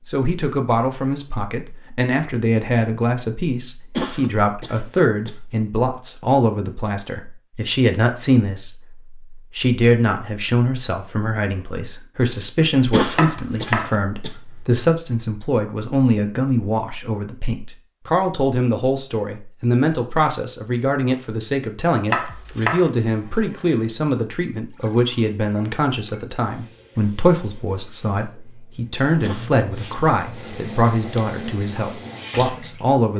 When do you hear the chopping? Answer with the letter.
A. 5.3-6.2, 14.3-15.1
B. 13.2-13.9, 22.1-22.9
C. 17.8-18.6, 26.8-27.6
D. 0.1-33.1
B.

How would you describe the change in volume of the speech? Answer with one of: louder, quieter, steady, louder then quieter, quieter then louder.
steady.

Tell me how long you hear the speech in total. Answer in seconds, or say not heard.
33 s.